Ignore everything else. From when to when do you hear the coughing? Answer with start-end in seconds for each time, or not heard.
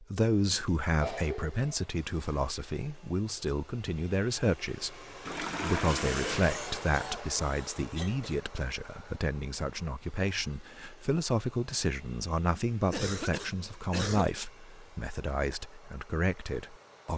0.9-1.8, 5.8-8.3, 12.9-14.3.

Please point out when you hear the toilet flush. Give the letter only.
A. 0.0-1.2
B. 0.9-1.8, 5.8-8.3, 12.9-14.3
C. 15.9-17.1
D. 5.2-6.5
D.